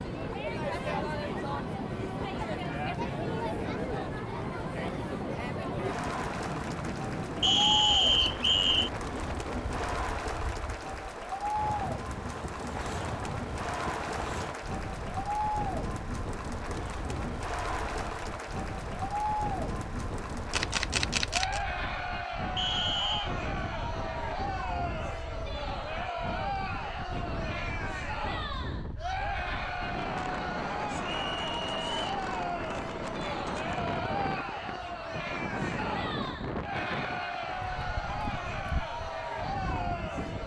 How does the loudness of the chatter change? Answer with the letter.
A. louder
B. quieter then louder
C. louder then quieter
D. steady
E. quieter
D.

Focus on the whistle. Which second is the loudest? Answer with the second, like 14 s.
8 s.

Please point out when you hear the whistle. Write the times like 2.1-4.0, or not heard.
7.4-8.9, 22.6-23.3, 31.2-32.0.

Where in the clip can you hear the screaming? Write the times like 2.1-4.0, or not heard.
not heard.